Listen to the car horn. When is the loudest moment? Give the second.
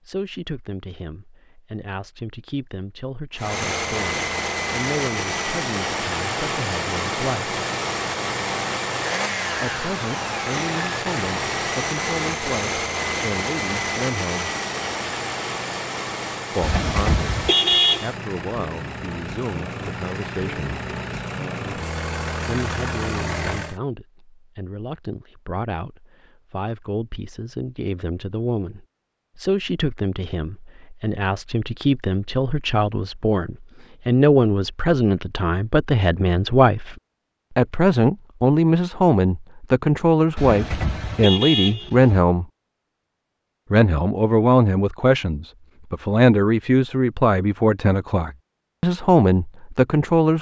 18 s.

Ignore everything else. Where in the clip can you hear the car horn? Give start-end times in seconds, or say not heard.
16.6-18.1, 40.4-42.2.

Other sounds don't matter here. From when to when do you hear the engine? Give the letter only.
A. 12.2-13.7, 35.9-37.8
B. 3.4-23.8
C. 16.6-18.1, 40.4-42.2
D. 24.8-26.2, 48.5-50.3
B.